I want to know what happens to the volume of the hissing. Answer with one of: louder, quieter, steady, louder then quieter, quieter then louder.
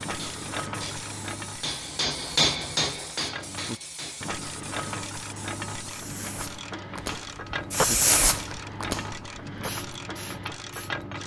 louder then quieter.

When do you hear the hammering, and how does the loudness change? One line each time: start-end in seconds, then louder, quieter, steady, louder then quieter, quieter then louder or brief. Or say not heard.
0.0-4.6 louder then quieter.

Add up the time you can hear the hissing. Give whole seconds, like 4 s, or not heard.
11 s.